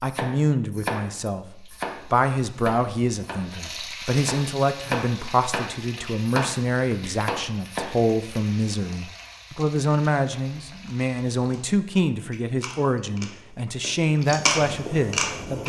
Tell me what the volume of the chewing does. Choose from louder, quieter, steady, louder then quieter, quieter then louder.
louder.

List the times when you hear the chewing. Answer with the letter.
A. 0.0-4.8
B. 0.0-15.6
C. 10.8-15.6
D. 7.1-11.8
C.